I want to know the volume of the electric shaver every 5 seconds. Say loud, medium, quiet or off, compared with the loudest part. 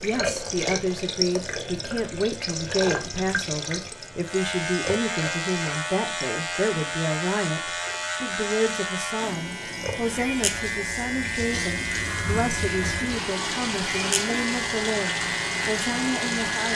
medium, loud, loud, loud.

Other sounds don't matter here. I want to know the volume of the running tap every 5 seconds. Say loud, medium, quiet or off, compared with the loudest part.
loud, medium, loud, loud.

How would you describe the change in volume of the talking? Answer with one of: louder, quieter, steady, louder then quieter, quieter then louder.
steady.